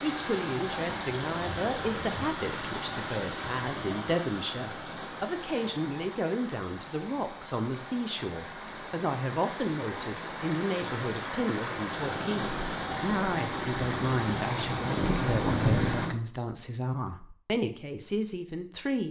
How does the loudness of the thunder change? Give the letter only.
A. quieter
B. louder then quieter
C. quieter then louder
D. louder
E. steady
D.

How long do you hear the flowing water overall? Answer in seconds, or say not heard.
16 s.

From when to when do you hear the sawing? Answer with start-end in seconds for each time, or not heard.
not heard.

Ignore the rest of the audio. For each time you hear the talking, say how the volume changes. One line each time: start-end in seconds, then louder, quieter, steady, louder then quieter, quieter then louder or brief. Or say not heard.
0.0-19.0 steady.